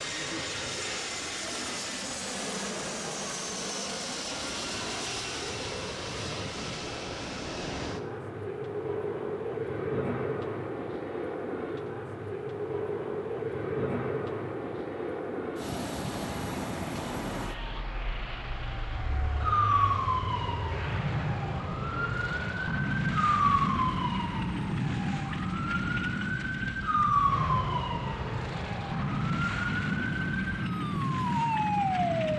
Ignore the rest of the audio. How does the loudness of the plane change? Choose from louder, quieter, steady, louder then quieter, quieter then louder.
steady.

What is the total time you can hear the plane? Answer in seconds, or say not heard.
32 s.